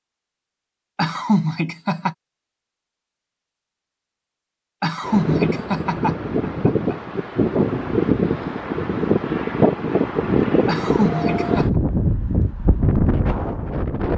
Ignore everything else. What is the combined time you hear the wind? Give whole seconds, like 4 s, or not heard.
9 s.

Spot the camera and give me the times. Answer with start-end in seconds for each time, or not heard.
not heard.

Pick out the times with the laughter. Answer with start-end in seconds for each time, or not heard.
0.9-2.1, 4.8-7.0, 10.7-11.7.